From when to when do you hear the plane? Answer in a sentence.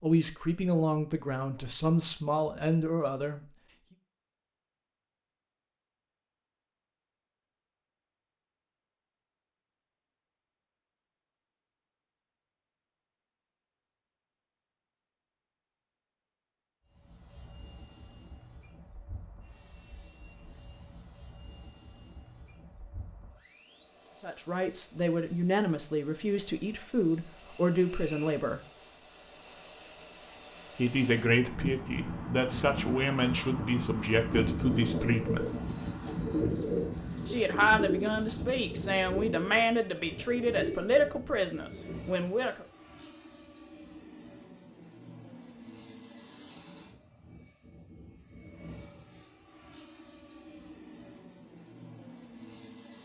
You can hear the plane from 16.9 to 53.0 s.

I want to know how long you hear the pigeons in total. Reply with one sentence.
The pigeons can be heard for 7 seconds in total.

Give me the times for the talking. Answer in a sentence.
The talking can be heard from 0.0 to 3.4 s, from 24.2 to 28.6 s, from 30.8 to 35.5 s and from 37.2 to 42.6 s.